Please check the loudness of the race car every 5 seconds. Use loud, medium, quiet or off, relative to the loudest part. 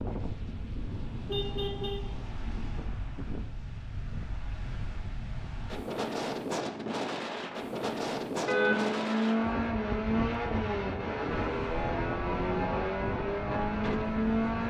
off, loud, loud.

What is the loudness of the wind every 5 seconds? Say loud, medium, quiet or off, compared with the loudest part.
medium, loud, loud.